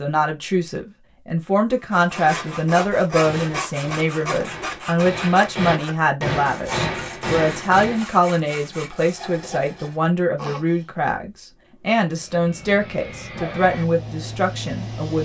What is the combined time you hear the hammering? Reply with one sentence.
You can hear the hammering for 6 seconds altogether.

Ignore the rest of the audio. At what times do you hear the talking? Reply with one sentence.
The talking can be heard from 0.0 to 15.2 s.